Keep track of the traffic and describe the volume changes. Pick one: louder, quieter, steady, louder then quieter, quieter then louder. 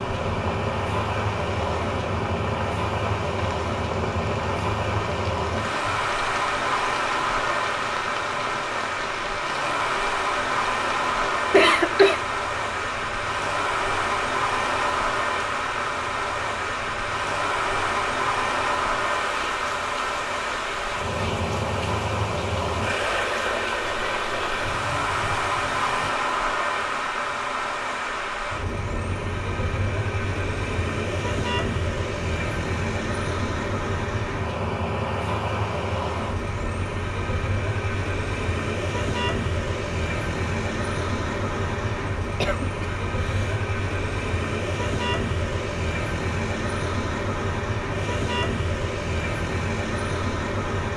steady.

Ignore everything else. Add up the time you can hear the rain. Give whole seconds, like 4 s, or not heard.
26 s.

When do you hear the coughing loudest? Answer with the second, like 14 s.
12 s.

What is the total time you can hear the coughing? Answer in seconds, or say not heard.
2 s.